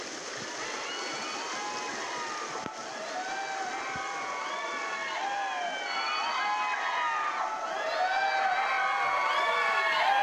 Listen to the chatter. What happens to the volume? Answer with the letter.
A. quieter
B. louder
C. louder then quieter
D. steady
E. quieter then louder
B.